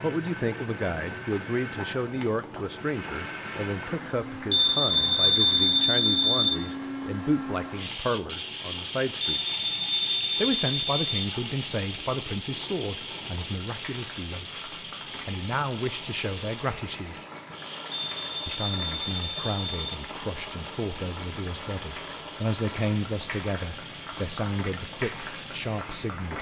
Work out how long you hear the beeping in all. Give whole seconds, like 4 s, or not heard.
6 s.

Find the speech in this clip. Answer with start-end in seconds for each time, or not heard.
0.0-9.6, 10.3-17.2, 18.4-26.3.